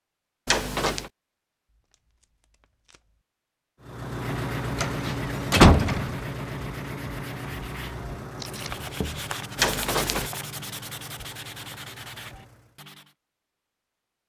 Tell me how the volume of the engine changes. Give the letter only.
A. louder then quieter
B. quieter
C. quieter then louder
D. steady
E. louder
B.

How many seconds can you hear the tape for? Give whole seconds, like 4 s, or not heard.
2 s.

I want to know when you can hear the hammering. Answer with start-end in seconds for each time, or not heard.
not heard.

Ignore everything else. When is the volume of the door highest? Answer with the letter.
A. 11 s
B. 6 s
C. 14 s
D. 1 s
B.